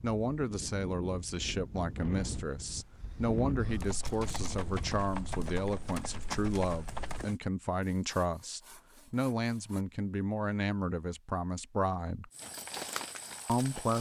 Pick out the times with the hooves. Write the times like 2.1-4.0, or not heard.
3.7-7.4, 12.3-13.9.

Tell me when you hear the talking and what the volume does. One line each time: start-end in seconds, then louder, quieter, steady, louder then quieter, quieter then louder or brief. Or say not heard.
0.0-12.3 steady
13.4-13.9 brief.